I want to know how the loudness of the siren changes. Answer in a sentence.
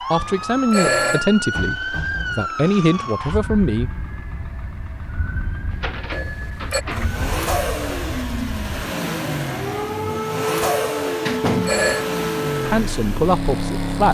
The volume of the siren goes down, then up.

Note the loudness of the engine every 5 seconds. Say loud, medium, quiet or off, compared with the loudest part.
quiet, loud, loud.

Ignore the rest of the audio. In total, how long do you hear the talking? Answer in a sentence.
You can hear the talking for 5 seconds altogether.